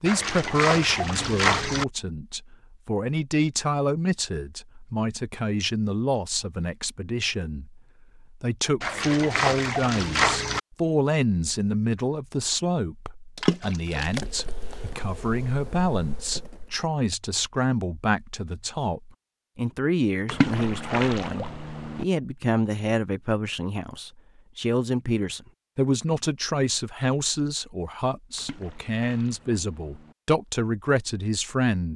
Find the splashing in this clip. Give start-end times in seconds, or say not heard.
0.1-1.9, 8.8-10.6, 13.3-14.8, 20.2-22.1, 28.4-30.1.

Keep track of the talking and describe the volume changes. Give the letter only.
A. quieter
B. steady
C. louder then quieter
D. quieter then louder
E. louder
B.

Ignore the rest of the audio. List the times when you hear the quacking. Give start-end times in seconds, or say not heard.
not heard.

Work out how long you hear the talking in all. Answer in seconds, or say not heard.
32 s.